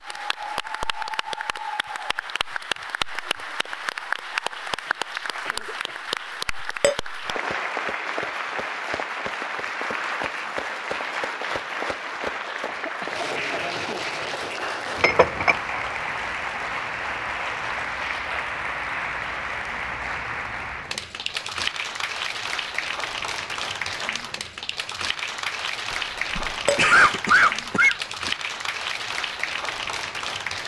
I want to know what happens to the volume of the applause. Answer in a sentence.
The loudness of the applause stays about the same.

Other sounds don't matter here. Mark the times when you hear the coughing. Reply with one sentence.
The coughing can be heard from 4.8 to 6.0 s, from 12.7 to 14.1 s and from 26.4 to 28.3 s.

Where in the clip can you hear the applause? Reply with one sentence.
The applause can be heard from 0.0 to 30.6 s.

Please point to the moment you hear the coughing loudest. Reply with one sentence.
The loudest moment of the coughing is at 27 seconds.